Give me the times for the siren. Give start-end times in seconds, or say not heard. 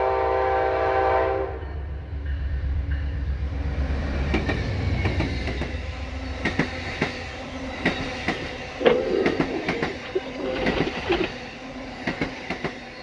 not heard.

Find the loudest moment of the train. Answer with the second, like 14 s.
1 s.